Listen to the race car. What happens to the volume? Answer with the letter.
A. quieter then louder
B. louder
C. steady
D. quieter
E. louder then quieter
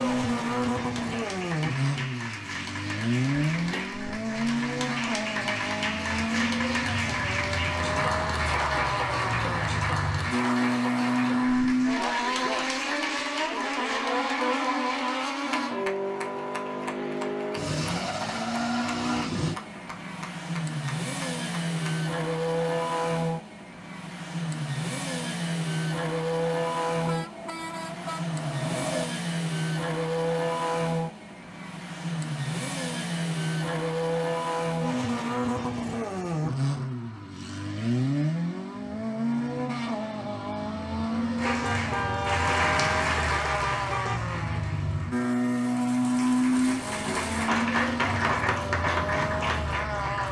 C.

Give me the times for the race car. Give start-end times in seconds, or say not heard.
0.0-50.2.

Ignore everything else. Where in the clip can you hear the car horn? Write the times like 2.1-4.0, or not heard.
3.5-4.0, 27.1-29.1, 41.5-44.2.